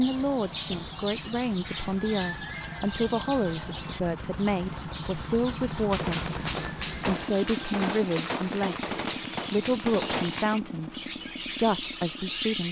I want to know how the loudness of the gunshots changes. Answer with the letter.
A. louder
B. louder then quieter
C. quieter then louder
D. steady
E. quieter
D.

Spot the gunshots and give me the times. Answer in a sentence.
You can hear the gunshots from 5.9 to 10.5 s.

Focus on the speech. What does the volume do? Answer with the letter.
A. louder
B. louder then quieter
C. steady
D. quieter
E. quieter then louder
C.